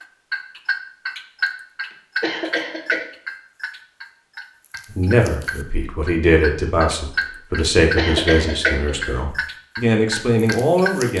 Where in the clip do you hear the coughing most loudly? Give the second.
8 s.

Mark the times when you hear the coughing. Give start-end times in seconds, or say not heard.
2.2-3.0, 8.0-9.2.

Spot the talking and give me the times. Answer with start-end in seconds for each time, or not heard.
4.9-11.1.